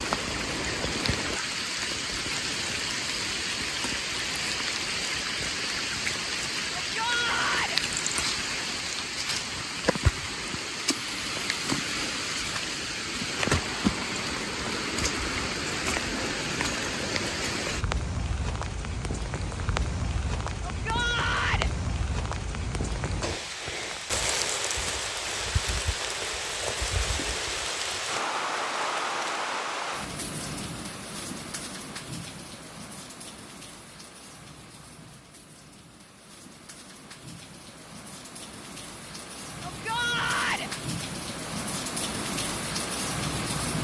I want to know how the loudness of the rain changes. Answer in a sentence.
The volume of the rain goes down.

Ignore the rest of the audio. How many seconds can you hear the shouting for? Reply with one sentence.
You can hear the shouting for 3 seconds altogether.